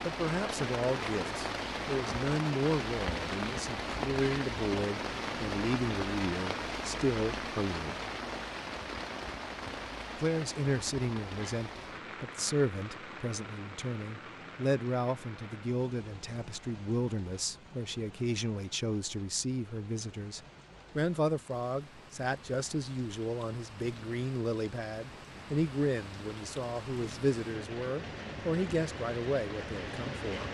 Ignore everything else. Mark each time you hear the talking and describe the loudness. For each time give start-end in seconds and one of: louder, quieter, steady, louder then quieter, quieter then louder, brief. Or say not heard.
0.0-8.0 steady
10.2-30.4 steady.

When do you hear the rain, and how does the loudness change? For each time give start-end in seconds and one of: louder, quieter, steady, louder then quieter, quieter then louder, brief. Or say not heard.
0.0-30.4 quieter then louder.